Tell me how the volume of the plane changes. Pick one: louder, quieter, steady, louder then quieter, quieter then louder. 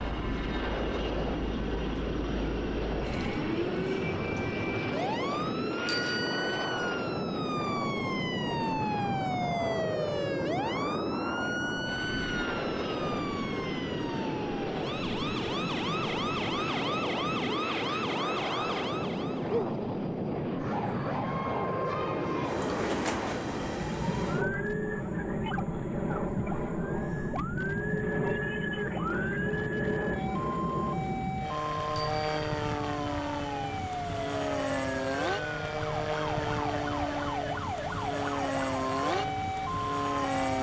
steady.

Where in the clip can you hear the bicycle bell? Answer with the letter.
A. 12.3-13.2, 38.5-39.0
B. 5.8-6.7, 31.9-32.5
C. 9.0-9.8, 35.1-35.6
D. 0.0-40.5
B.